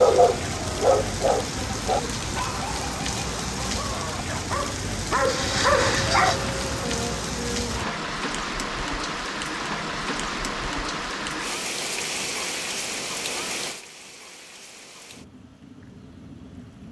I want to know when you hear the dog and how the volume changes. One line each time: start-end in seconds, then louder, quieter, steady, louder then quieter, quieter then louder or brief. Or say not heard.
0.0-6.4 quieter then louder.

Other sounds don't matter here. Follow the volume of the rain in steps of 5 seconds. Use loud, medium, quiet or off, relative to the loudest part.
loud, loud, loud, quiet.